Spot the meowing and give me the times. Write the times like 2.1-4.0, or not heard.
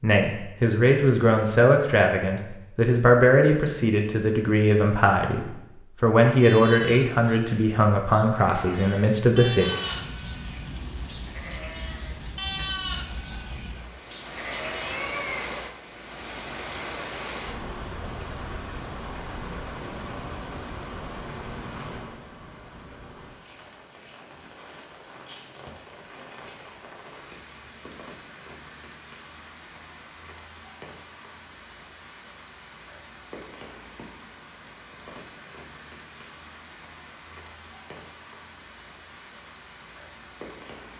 14.8-15.8.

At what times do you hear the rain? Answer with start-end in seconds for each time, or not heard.
9.6-40.9.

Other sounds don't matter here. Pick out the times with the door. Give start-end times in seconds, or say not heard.
not heard.